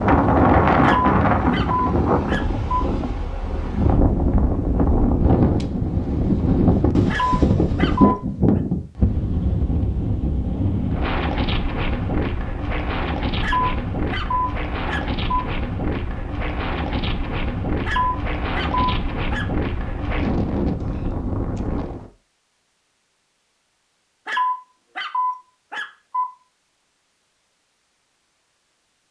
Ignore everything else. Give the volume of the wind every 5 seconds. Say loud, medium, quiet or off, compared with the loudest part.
loud, loud, medium, medium, medium, off.